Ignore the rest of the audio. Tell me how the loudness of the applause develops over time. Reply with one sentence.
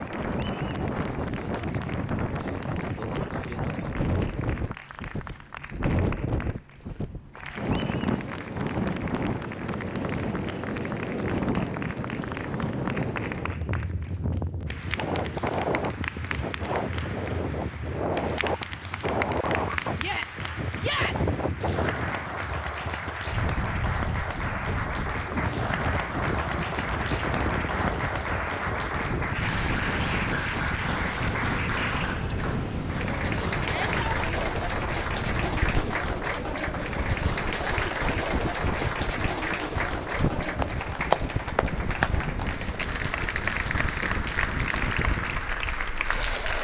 The volume of the applause goes up.